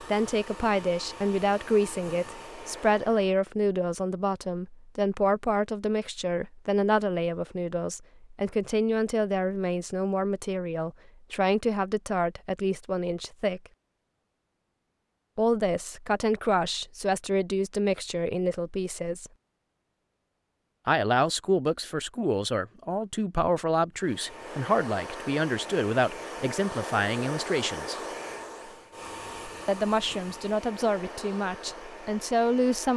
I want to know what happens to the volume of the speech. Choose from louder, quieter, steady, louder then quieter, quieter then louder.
steady.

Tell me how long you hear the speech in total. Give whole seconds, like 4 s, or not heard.
28 s.